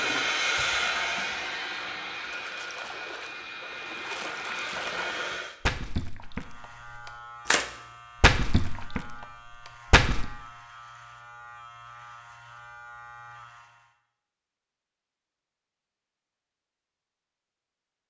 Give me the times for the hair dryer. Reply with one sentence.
You can hear the hair dryer from 0.0 to 5.5 s.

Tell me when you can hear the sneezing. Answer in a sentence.
The sneezing can't be heard in this clip.